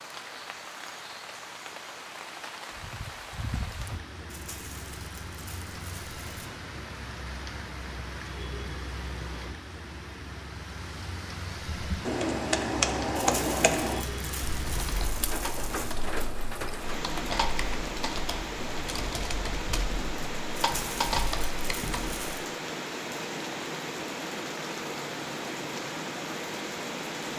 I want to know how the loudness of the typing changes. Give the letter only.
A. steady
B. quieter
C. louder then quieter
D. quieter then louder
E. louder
D.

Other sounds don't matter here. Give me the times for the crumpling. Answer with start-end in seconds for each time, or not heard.
4.2-6.5, 13.2-15.9, 20.6-22.4.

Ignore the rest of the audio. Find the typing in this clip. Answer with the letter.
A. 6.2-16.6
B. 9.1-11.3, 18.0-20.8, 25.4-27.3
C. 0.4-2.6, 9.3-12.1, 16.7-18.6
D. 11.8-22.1
D.